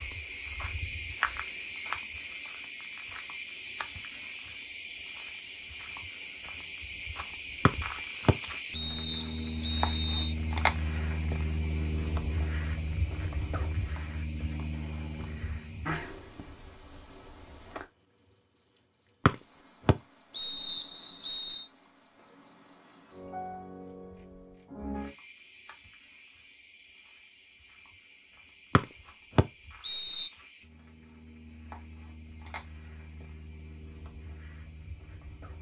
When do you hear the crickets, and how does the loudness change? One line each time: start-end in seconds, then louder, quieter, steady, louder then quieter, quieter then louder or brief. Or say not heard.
0.0-35.5 quieter.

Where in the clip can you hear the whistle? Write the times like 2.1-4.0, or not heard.
7.7-10.3, 19.2-21.6, 28.8-30.3.